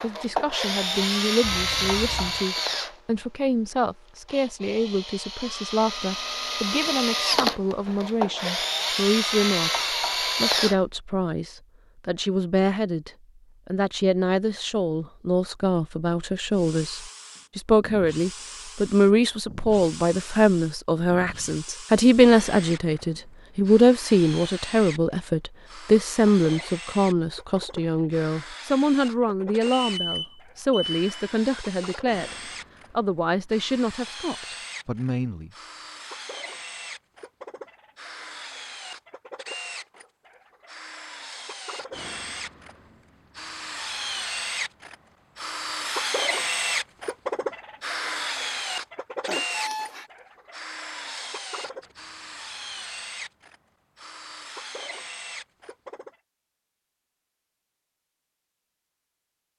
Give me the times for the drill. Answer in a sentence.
The drill can be heard from 0.0 to 10.8 s and from 16.5 to 56.1 s.